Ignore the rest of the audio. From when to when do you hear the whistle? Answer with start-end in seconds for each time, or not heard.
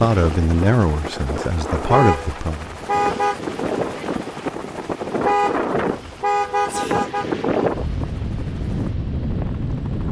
not heard.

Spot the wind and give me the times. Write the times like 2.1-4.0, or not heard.
0.1-10.0.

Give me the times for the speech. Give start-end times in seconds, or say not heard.
0.0-2.7.